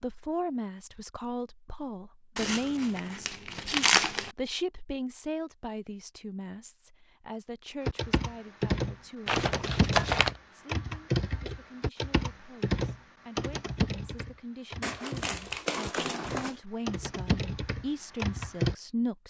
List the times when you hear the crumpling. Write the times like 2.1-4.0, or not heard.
2.4-4.3, 9.2-10.3, 14.8-16.6.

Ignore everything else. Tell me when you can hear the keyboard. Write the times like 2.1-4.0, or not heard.
7.8-18.8.